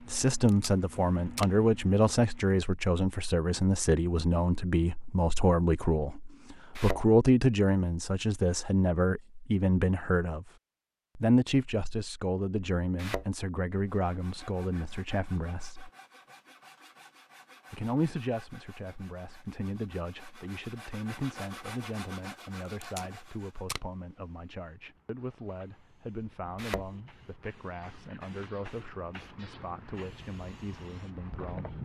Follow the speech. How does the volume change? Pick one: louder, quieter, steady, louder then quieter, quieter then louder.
quieter.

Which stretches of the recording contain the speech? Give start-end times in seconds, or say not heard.
0.1-10.5, 11.2-15.9, 17.7-31.8.